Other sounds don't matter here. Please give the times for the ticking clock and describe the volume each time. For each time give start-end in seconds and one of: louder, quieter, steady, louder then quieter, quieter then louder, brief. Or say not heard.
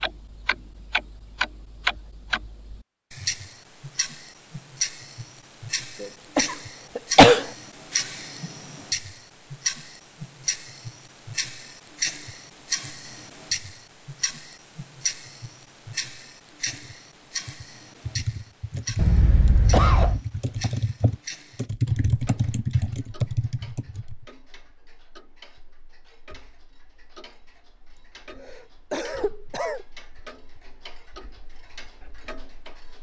0.0-32.9 quieter.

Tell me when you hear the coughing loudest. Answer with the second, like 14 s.
7 s.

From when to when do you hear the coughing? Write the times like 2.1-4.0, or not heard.
6.0-7.5, 18.9-20.2, 27.9-29.9.